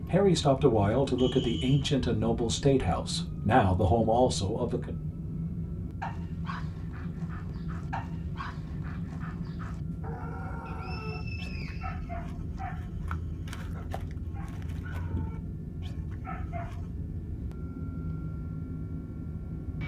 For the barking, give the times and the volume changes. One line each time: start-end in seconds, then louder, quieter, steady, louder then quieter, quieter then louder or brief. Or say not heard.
6.0-16.9 steady.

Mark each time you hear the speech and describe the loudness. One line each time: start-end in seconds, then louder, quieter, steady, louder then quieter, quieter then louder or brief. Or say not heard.
0.1-5.0 steady.